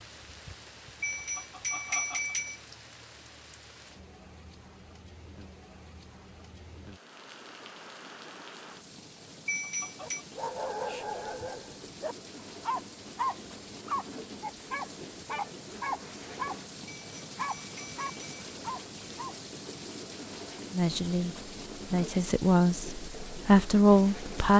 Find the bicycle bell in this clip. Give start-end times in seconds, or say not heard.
1.0-2.5, 9.4-10.2, 16.9-18.2.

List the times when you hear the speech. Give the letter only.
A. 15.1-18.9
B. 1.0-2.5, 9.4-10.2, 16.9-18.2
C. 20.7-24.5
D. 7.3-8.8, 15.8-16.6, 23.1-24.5
C.